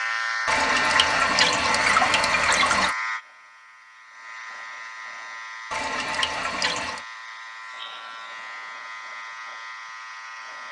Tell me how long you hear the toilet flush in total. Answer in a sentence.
The toilet flush can be heard for 4 seconds in total.